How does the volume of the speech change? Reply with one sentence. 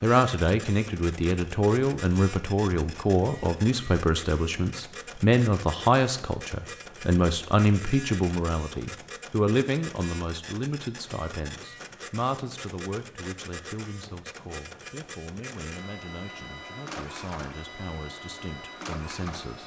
The volume of the speech goes down.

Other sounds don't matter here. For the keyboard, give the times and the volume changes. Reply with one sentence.
You can't hear the keyboard here.